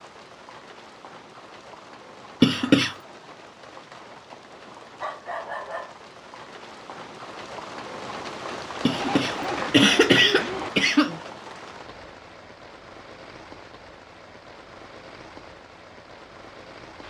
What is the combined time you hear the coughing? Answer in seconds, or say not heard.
3 s.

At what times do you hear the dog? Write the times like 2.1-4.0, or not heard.
5.0-6.0, 8.9-10.7.